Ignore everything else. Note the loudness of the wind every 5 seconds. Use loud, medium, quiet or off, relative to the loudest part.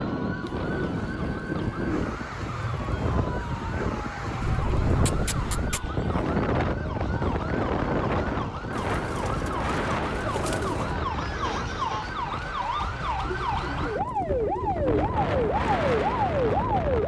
loud, loud, medium, loud.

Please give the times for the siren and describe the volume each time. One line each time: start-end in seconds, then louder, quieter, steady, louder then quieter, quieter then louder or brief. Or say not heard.
0.0-17.0 louder.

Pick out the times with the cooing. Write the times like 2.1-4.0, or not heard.
0.4-2.1, 4.4-5.9, 8.7-10.9, 13.2-15.2.